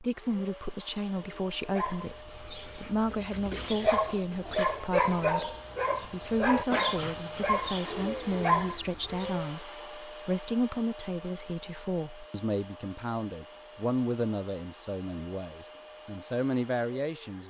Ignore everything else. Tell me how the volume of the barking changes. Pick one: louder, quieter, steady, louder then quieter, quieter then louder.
louder.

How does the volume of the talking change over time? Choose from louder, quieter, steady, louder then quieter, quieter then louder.
steady.